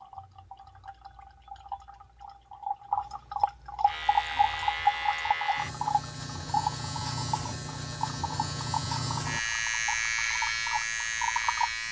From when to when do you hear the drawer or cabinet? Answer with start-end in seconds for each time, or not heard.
not heard.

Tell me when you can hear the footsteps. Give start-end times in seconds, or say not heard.
not heard.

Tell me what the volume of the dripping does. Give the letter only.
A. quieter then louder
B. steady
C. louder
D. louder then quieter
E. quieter
D.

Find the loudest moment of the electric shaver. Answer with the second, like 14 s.
10 s.